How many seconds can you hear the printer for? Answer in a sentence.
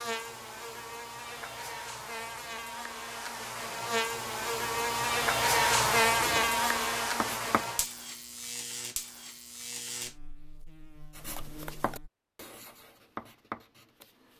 The printer can't be heard in this clip.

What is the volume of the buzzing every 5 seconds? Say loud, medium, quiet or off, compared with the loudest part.
medium, loud, quiet.